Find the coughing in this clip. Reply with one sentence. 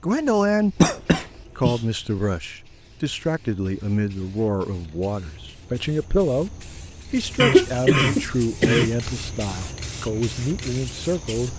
You can hear the coughing from 0.8 to 1.8 s and from 7.4 to 8.9 s.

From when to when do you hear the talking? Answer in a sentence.
You can hear the talking from 0.0 to 0.8 s and from 1.6 to 11.5 s.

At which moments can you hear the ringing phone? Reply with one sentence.
You can't hear the ringing phone here.